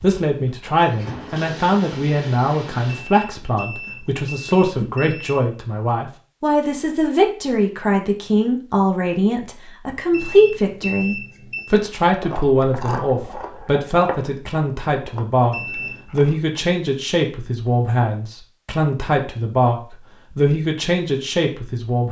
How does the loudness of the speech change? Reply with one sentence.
The loudness of the speech stays about the same.